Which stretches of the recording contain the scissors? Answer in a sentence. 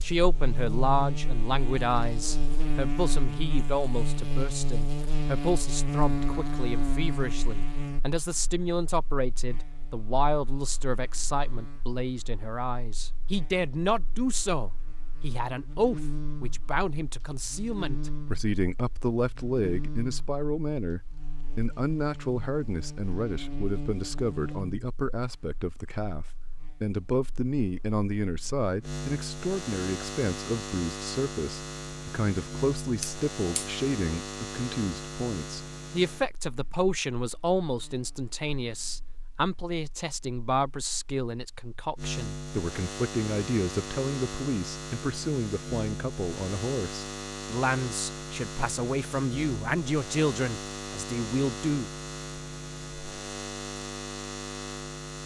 The scissors can be heard from 33.0 to 33.8 s.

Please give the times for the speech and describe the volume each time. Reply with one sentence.
The speech can be heard from 0.0 to 51.9 s, at a steady volume.